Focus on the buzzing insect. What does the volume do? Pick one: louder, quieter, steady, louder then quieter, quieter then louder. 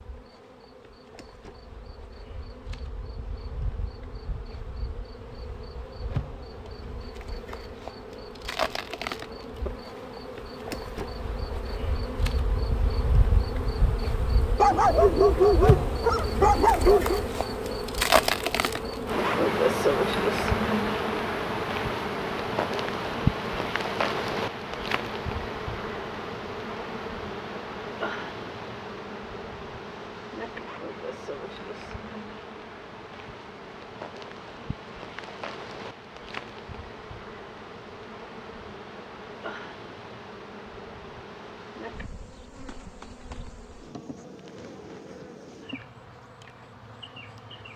louder then quieter.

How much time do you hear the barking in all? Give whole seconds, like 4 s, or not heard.
3 s.